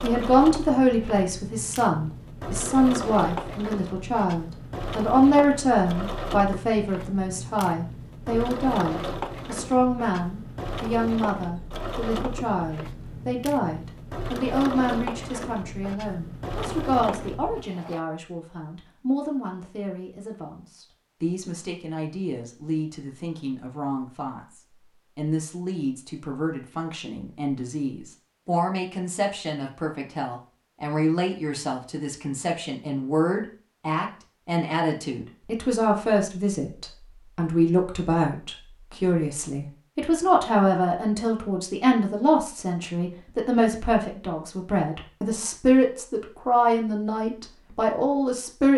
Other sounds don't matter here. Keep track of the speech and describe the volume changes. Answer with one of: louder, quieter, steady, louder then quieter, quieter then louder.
quieter then louder.